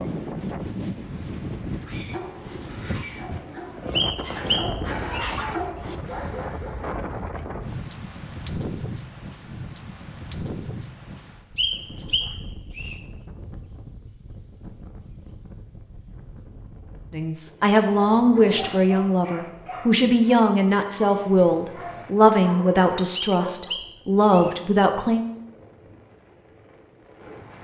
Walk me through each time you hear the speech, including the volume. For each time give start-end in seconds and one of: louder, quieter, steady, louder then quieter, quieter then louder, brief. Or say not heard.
17.1-25.2 steady.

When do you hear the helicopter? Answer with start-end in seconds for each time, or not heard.
not heard.